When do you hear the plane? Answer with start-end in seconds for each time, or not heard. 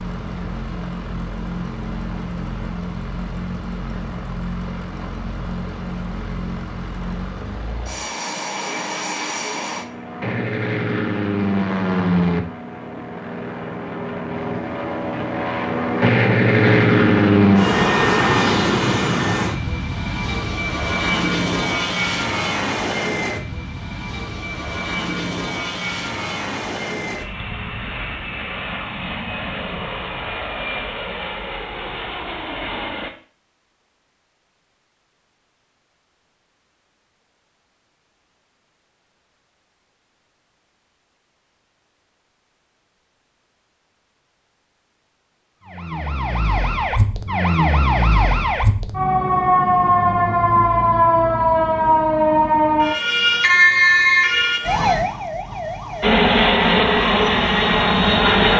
0.0-33.1, 56.0-58.5.